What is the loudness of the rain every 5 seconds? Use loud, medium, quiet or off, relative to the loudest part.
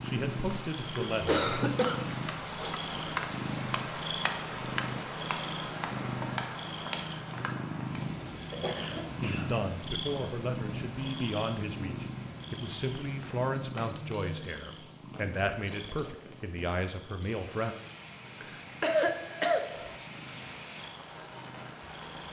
loud, loud, medium, medium, medium.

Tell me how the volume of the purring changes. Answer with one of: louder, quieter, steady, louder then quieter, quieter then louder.
quieter.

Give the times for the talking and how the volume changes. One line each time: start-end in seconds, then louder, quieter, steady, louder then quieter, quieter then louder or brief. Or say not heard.
0.0-1.4 brief
9.2-17.8 steady.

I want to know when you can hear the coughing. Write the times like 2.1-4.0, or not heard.
1.1-3.0, 8.0-9.5, 18.4-19.9.